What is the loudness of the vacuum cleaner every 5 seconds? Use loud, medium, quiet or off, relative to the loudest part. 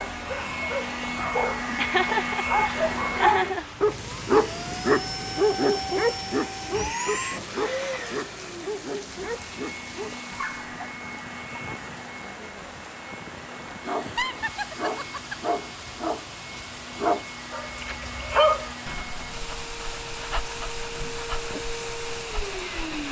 loud, loud, medium, medium, loud.